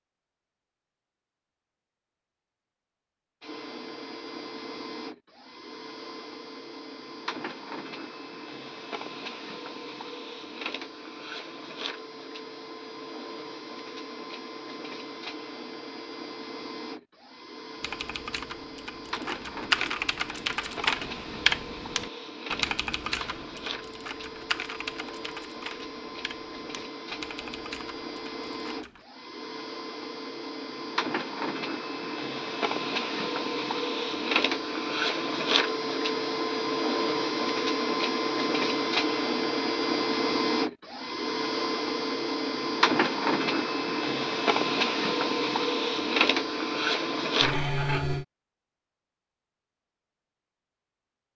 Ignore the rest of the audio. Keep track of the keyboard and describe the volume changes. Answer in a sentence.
The volume of the keyboard goes down.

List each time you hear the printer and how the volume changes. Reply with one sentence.
You can hear the printer from 3.4 to 48.2 s, getting louder.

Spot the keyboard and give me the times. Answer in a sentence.
The keyboard can be heard from 17.8 to 29.1 s.